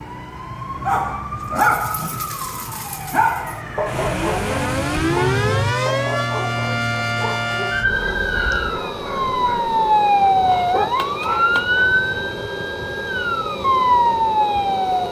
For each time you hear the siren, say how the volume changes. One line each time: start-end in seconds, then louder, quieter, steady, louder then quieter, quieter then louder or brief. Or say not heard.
0.0-15.0 louder.